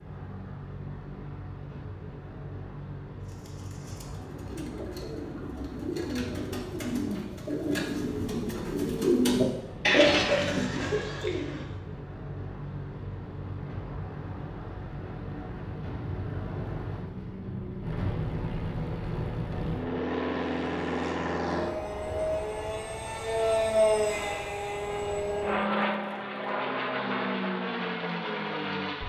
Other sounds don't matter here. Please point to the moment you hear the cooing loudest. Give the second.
10 s.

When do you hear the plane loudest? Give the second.
24 s.